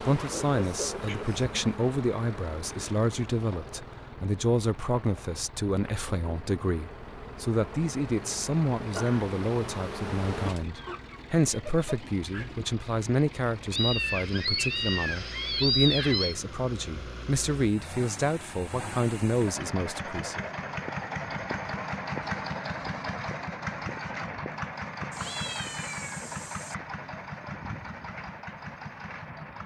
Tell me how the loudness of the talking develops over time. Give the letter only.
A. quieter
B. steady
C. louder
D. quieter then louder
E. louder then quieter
B.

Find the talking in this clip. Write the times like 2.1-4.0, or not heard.
0.0-20.4.